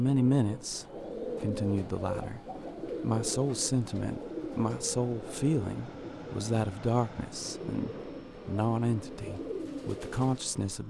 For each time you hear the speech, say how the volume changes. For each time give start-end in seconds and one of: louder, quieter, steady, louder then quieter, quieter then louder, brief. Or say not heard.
0.0-2.4 brief
3.0-10.8 steady.